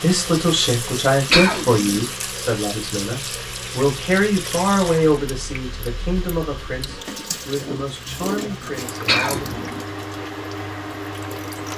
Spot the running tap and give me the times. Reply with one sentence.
You can hear the running tap from 0.0 to 11.7 s.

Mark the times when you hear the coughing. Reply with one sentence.
You can hear the coughing from 1.3 to 1.9 s and from 9.1 to 9.8 s.